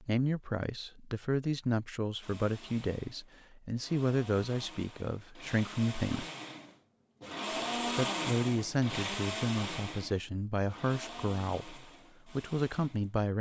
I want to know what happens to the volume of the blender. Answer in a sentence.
The volume of the blender goes up, then down.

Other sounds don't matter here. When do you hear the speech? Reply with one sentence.
You can hear the speech from 0.0 to 6.2 s and from 8.0 to 13.3 s.